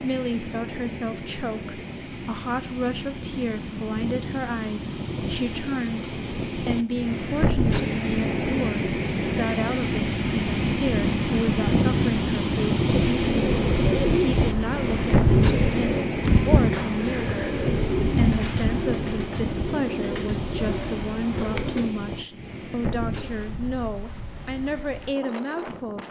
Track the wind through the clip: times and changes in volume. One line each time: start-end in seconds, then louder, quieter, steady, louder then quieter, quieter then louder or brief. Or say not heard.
0.0-26.0 louder then quieter.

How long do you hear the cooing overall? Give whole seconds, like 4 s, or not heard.
9 s.